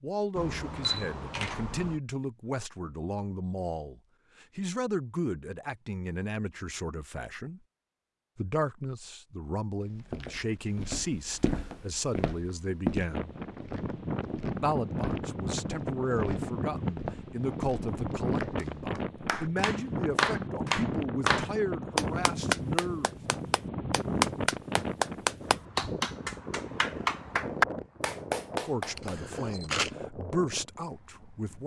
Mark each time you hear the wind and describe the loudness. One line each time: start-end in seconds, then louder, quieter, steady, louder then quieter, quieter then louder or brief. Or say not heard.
13.1-31.6 quieter.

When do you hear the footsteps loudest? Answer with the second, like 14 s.
13 s.